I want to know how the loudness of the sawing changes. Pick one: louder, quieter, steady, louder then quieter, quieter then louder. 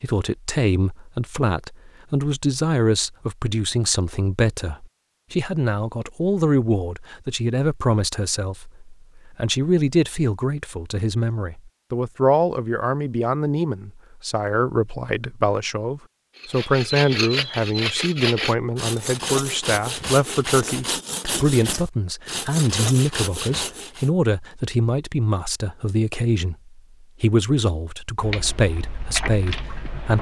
steady.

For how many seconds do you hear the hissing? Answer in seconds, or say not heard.
2 s.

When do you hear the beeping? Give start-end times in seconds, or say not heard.
not heard.